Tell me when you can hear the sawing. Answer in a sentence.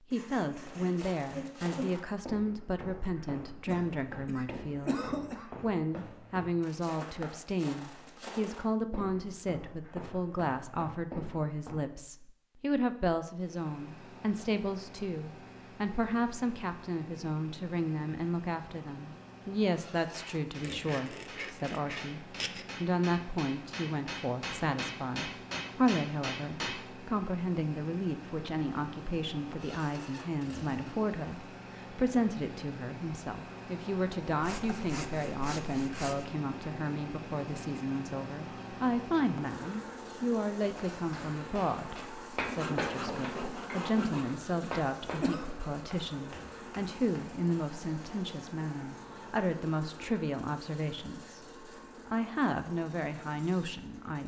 You can hear the sawing from 0.1 to 1.9 s, from 20.6 to 22.6 s, from 34.4 to 36.2 s and from 42.5 to 44.2 s.